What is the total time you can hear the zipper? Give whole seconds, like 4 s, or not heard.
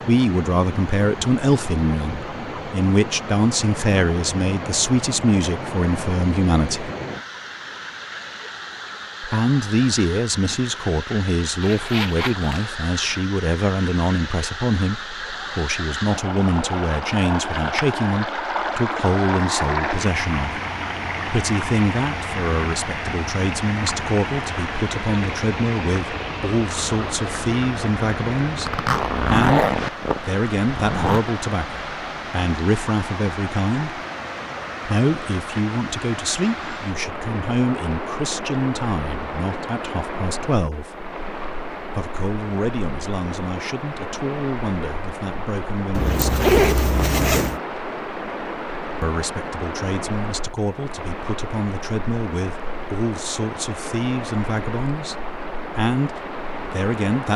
5 s.